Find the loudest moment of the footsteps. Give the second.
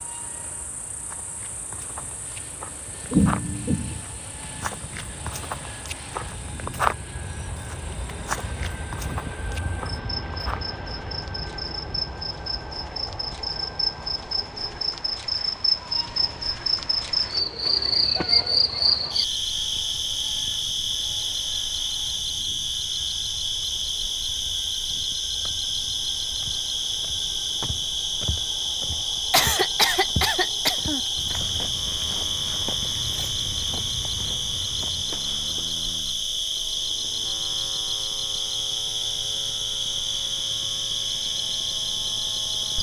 7 s.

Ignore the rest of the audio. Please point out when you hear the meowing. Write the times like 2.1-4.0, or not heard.
not heard.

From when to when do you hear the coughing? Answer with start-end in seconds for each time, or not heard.
3.1-4.0, 29.3-31.0.